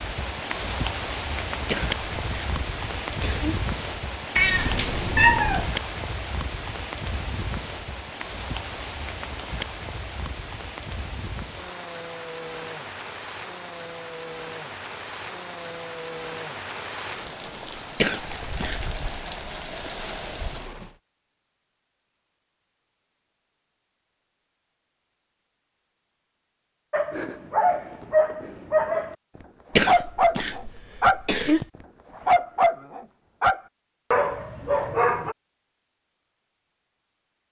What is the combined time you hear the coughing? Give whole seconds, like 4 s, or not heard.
5 s.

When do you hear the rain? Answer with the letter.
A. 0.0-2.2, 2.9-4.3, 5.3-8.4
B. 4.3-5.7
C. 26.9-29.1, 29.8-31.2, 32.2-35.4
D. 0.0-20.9
D.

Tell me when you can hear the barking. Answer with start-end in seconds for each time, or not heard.
26.9-29.1, 29.8-31.2, 32.2-35.4.